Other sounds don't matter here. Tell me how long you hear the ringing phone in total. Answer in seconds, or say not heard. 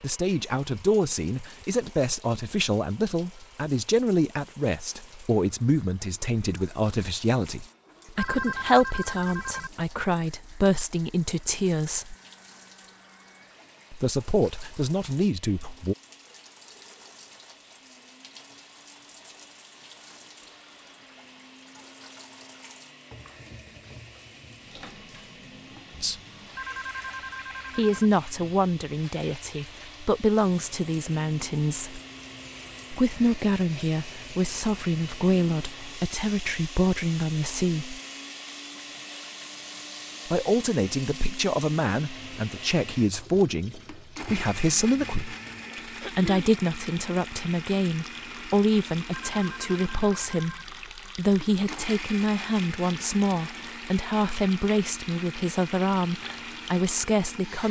5 s.